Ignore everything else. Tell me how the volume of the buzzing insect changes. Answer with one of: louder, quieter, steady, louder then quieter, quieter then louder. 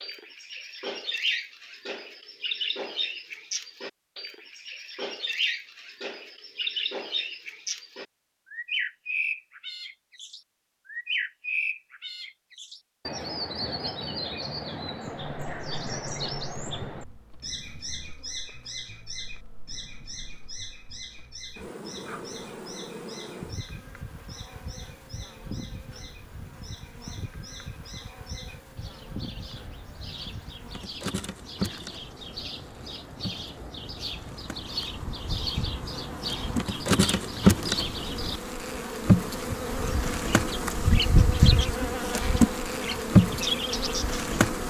louder.